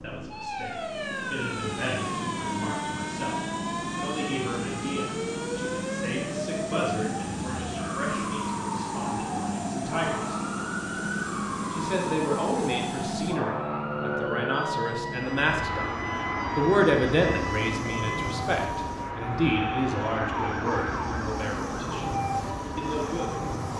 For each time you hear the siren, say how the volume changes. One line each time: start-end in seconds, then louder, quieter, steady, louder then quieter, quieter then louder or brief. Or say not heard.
0.0-23.7 steady.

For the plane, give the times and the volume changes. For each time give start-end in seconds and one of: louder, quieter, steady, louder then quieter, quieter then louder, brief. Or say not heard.
0.0-23.7 steady.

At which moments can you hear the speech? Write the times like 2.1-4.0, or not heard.
0.0-10.4, 11.7-15.9, 16.6-22.1, 22.8-23.4.